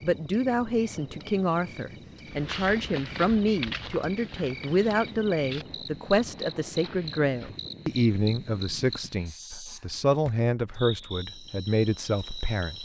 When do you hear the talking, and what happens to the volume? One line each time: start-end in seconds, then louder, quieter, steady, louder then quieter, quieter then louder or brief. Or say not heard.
0.0-12.7 steady.